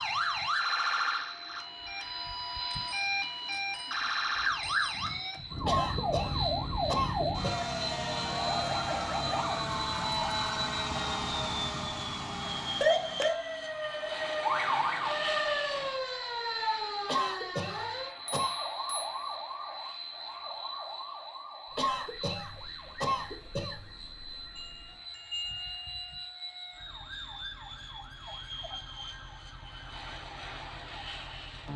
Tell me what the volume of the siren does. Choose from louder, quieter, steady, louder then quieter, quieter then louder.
quieter.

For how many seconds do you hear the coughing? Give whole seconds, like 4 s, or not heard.
6 s.